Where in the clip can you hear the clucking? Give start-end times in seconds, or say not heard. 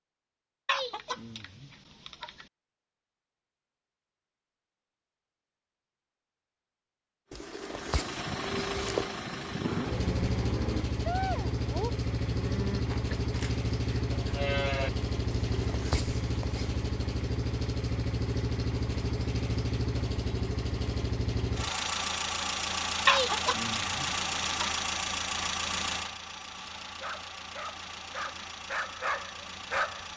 0.7-2.5, 23.1-24.9.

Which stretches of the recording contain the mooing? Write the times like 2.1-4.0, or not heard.
7.3-16.8.